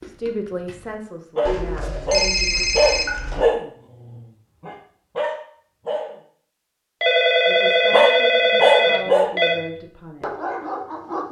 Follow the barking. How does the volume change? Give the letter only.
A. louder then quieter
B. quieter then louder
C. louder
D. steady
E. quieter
A.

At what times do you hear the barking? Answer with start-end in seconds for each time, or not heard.
0.0-6.2, 7.9-11.2.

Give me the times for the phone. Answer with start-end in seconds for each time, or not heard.
1.4-3.5, 7.0-9.6.